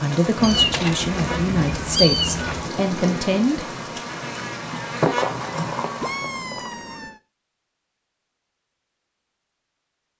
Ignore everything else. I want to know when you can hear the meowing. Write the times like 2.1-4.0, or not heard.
0.4-2.6, 6.0-7.2.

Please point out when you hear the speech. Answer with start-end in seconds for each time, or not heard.
0.0-3.6.